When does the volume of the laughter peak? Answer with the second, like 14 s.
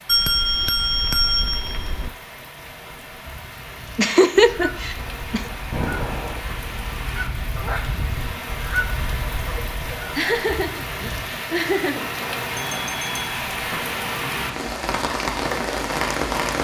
4 s.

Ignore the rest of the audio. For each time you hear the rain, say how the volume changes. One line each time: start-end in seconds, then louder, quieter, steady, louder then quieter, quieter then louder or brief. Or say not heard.
0.0-16.5 louder.